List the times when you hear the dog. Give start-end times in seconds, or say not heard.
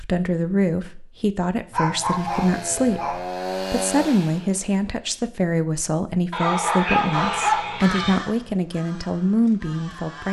1.7-3.2, 6.3-8.2.